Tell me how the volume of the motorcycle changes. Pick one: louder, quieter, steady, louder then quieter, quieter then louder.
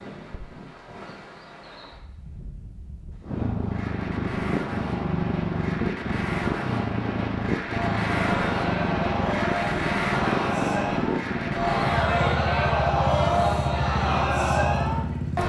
steady.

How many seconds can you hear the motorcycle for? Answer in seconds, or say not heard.
12 s.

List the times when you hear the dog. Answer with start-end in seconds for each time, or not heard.
not heard.